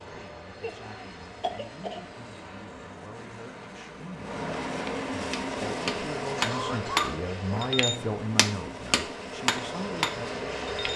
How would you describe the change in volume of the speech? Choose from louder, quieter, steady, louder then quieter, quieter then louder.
louder then quieter.